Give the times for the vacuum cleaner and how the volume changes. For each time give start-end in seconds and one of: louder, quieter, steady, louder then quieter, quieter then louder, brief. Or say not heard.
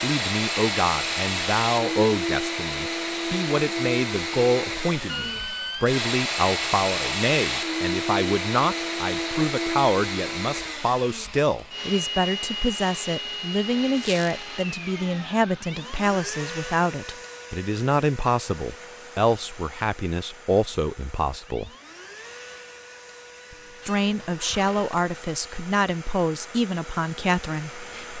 0.0-28.1 quieter.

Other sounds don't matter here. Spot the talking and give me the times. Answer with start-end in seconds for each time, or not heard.
0.0-21.7, 23.9-28.1.